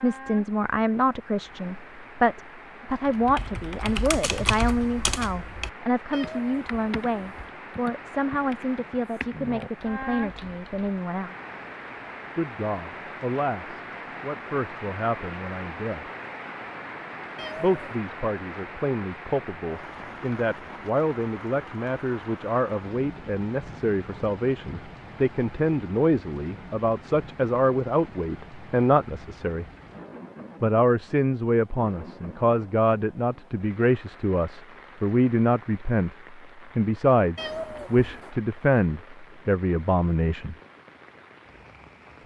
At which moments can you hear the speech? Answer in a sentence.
You can hear the speech from 0.0 to 11.3 s, from 12.3 to 16.1 s, from 17.6 to 29.6 s and from 30.6 to 40.5 s.